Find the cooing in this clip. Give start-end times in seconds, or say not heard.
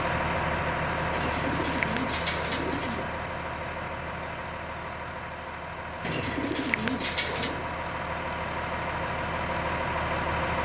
1.1-3.1, 6.0-7.7.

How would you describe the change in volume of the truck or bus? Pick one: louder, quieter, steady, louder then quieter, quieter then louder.
quieter then louder.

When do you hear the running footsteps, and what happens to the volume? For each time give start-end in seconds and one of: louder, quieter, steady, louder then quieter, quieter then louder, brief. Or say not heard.
not heard.